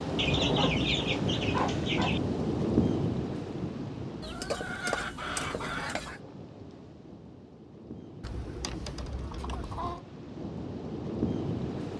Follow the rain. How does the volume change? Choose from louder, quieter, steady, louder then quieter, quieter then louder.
quieter then louder.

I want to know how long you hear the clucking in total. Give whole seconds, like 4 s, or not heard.
6 s.